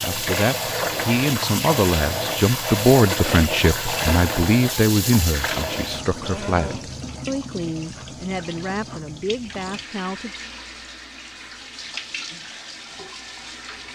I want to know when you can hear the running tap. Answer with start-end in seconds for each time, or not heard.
0.0-13.9.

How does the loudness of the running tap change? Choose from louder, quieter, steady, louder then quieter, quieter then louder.
quieter.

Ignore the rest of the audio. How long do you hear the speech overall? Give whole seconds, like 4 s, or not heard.
10 s.